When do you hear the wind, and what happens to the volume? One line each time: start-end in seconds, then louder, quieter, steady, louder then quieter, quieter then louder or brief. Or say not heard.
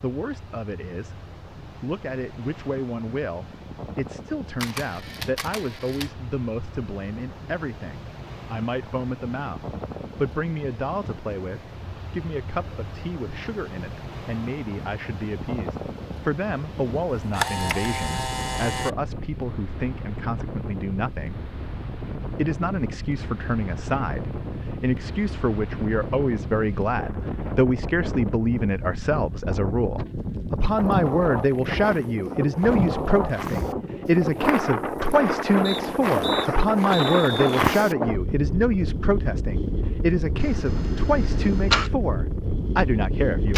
0.0-43.5 louder.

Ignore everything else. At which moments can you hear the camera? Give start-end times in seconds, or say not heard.
4.6-6.2, 17.1-18.9, 40.4-41.9.